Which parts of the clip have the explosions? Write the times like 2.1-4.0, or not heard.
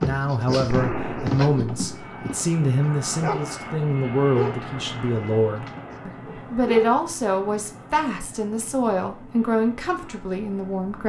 0.7-2.0.